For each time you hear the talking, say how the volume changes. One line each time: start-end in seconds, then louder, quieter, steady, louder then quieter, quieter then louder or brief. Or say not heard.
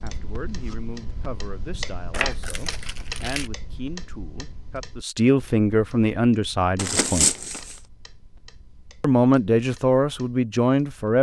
0.0-7.3 louder
9.0-11.1 brief.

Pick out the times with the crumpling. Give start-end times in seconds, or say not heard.
2.1-3.5, 6.8-7.8.